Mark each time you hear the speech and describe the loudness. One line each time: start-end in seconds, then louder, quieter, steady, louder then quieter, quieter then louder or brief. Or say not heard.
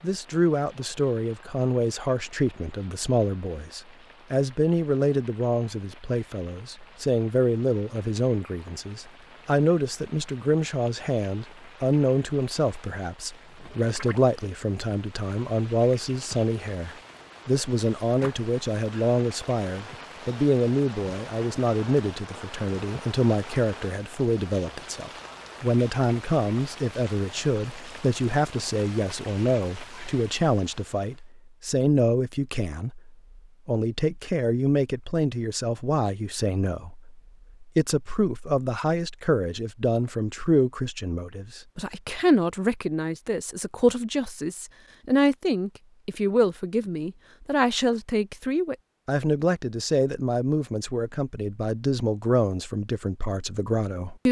0.0-54.2 steady.